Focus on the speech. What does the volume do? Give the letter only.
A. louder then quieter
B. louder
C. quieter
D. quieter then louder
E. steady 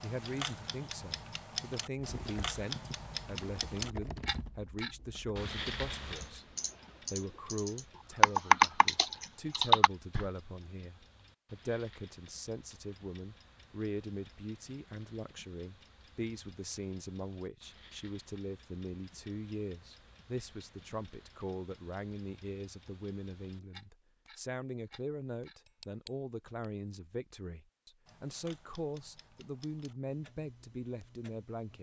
E.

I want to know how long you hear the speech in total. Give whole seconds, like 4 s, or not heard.
32 s.